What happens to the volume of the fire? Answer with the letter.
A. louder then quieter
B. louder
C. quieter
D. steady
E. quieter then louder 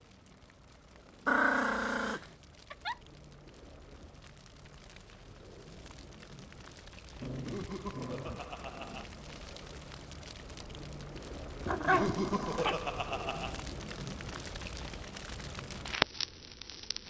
B.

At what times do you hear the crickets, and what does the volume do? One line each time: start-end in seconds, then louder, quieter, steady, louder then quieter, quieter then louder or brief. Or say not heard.
not heard.